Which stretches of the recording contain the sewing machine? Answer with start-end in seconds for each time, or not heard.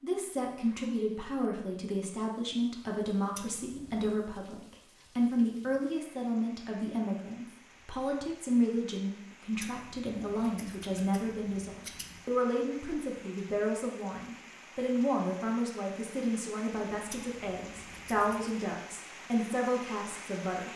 not heard.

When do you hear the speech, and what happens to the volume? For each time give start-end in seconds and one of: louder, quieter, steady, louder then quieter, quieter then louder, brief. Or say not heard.
0.0-20.7 steady.